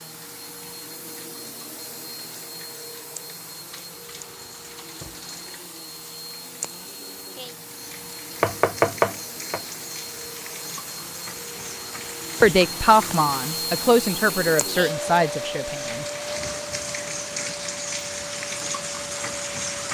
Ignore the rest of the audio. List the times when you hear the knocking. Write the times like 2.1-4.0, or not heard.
8.4-9.6.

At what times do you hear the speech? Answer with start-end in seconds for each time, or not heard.
12.4-16.1.